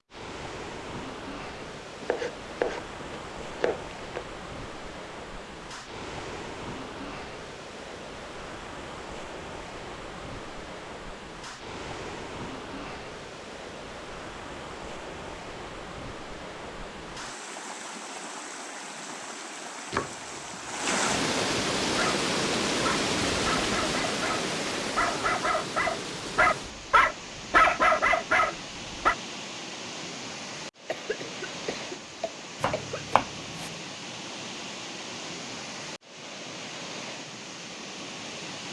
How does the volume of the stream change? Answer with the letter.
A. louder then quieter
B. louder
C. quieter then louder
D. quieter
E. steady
A.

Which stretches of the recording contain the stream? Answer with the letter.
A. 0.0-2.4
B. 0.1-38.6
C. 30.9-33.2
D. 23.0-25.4
B.